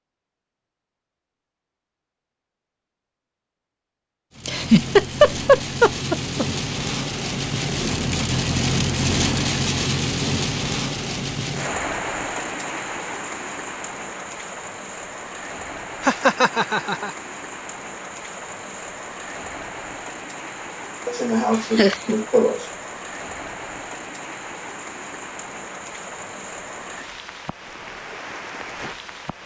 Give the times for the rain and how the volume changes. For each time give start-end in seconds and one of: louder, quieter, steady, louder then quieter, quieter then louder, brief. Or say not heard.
4.3-29.4 quieter.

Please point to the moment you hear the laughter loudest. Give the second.
5 s.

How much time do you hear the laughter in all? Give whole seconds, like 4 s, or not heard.
5 s.